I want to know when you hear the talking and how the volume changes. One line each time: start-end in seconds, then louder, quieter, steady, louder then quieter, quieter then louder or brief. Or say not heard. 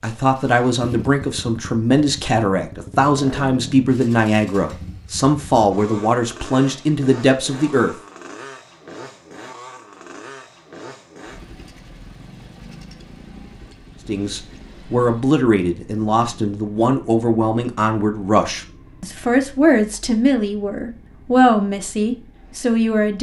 0.0-8.0 steady
14.1-23.1 steady.